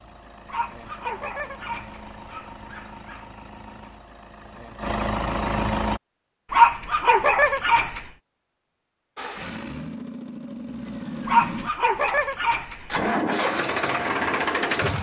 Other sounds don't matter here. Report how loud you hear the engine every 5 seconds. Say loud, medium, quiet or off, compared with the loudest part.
quiet, loud, loud.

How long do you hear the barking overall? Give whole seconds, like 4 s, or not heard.
6 s.